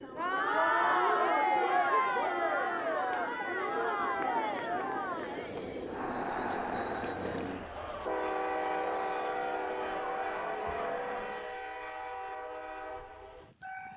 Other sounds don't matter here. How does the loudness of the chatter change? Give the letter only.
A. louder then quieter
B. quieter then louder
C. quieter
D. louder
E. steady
C.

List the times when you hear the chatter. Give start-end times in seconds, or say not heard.
0.0-11.6.